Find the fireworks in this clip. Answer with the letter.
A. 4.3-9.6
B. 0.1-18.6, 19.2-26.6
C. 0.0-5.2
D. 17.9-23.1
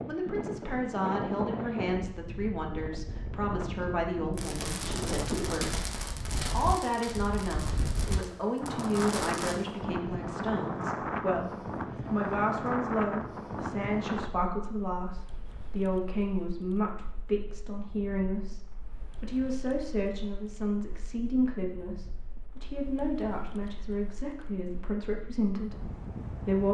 A.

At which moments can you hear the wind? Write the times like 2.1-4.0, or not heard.
0.0-26.6.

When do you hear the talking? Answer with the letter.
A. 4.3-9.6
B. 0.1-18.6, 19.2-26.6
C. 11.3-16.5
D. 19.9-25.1
B.